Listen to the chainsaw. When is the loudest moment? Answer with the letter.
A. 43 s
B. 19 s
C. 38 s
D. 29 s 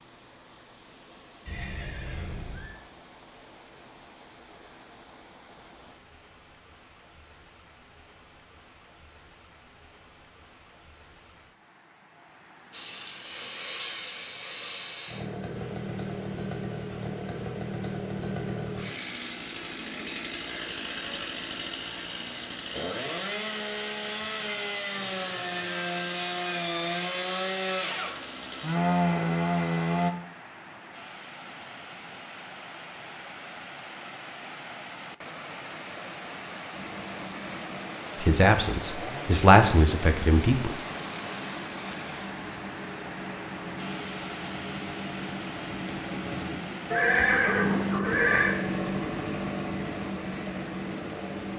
D.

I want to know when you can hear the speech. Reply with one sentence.
You can hear the speech from 38.2 to 40.8 s.